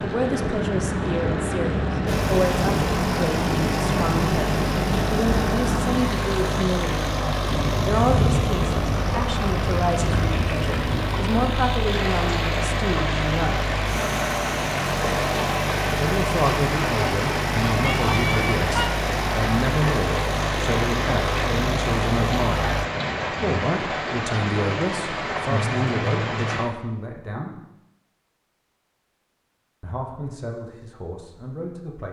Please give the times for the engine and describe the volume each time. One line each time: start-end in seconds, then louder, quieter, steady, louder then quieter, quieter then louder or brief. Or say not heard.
2.0-22.9 steady.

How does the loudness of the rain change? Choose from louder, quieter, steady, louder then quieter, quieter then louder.
steady.